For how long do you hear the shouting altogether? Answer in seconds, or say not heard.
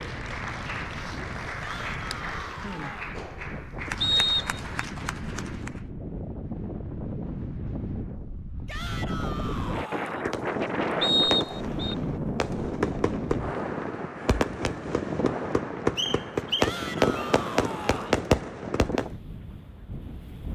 5 s.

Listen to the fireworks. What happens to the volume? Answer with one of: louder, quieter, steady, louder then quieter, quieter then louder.
louder.